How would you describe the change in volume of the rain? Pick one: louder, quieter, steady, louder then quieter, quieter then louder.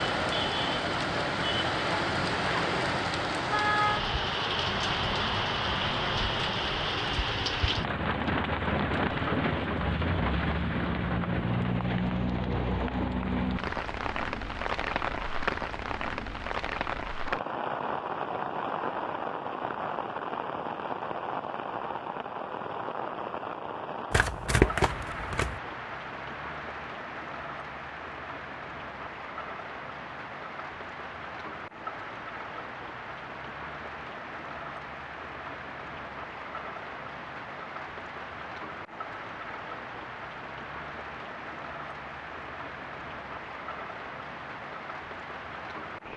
quieter.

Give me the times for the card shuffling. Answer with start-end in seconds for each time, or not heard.
24.1-25.6.